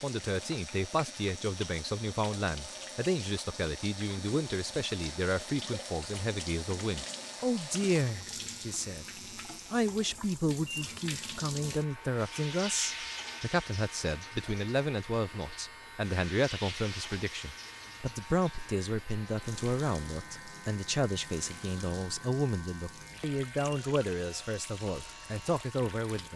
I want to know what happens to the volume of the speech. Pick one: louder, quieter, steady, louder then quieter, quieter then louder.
steady.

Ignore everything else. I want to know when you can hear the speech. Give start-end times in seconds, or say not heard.
0.0-9.1, 9.7-26.3.